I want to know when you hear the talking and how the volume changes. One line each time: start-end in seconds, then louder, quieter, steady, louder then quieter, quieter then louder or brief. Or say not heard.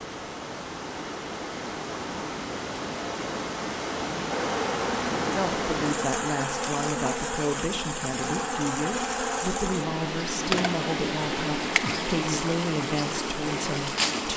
5.3-14.3 steady.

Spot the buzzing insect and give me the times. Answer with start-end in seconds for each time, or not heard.
4.3-14.3.